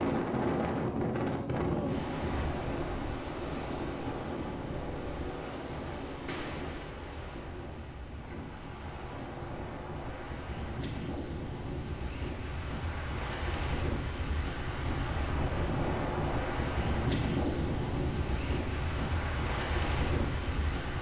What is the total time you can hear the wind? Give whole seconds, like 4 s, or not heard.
21 s.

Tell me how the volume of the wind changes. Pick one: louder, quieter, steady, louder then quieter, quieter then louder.
quieter then louder.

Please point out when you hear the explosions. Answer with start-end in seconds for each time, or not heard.
6.2-6.8.